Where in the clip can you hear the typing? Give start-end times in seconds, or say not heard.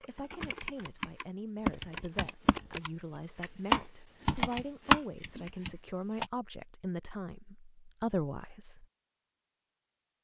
0.0-6.3.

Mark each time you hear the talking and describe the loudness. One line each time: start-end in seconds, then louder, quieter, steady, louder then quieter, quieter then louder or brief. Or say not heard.
0.0-8.8 louder.